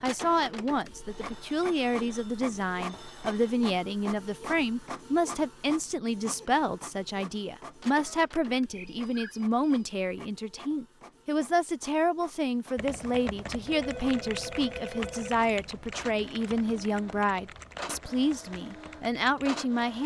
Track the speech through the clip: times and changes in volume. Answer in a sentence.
You can hear the speech from 0.0 to 20.0 s, at a steady volume.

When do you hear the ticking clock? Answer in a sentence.
The ticking clock can't be heard in this clip.